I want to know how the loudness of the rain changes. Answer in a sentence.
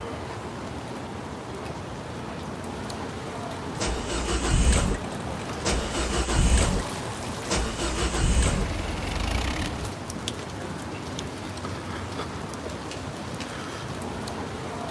The loudness of the rain stays about the same.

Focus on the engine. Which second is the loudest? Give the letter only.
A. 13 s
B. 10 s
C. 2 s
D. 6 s
D.